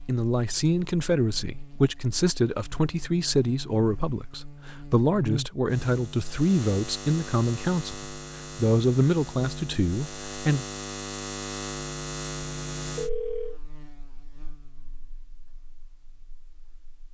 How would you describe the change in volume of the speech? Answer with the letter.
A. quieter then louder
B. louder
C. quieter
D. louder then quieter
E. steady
E.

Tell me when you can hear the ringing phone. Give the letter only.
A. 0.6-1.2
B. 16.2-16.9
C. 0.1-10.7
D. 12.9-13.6
D.